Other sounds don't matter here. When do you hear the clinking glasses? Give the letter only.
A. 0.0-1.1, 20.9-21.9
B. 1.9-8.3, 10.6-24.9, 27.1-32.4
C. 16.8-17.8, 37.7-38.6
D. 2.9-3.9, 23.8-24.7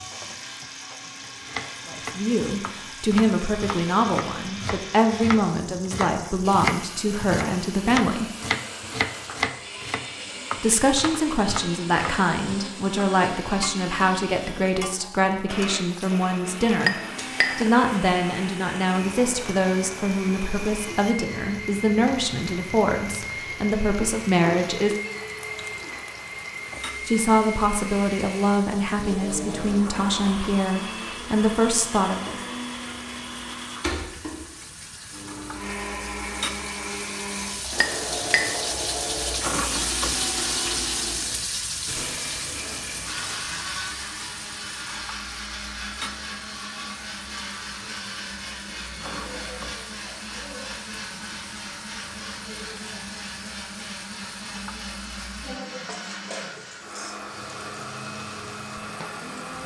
C.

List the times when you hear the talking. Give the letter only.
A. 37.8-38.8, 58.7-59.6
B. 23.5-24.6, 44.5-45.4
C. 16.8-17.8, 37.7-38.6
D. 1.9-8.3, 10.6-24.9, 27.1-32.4
D.